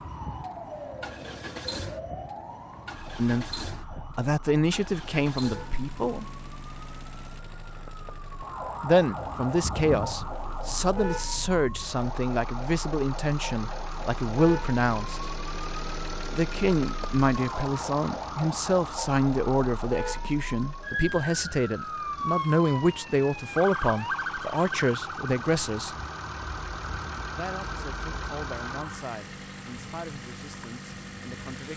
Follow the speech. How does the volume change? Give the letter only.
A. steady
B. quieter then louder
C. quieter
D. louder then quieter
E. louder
C.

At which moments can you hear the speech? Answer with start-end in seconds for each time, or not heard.
3.1-6.2, 8.8-15.2, 16.3-25.9, 27.3-31.7.